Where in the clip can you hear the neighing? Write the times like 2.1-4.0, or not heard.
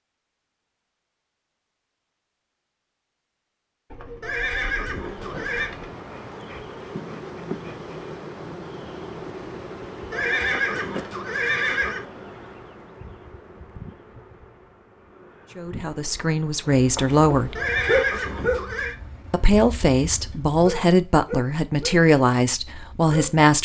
4.2-5.7, 10.1-12.1, 17.6-18.9.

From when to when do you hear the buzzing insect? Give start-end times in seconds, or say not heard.
4.8-18.6.